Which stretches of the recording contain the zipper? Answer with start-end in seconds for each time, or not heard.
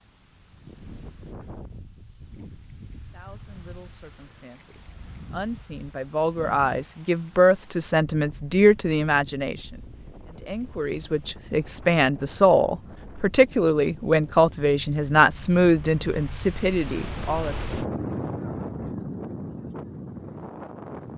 not heard.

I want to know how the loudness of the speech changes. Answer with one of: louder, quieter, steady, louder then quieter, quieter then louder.
louder.